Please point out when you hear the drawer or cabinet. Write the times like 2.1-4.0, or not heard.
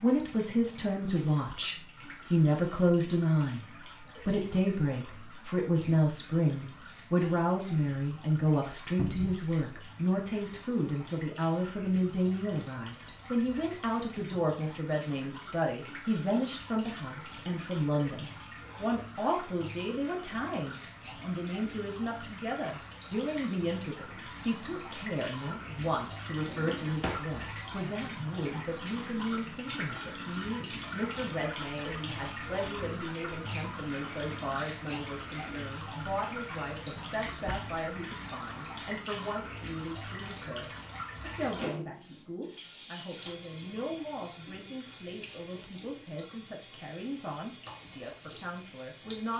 8.9-9.4, 26.4-27.2, 37.0-37.7.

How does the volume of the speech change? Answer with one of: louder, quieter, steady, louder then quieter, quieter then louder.
quieter.